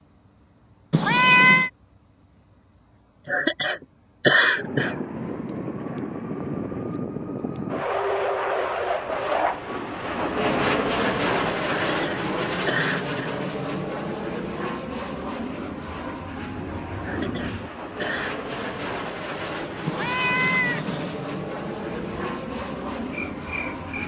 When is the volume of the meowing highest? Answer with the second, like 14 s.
1 s.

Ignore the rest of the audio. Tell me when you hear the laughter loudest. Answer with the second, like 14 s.
4 s.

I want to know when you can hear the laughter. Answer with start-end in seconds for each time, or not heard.
3.2-5.0, 11.9-13.3, 17.0-18.6.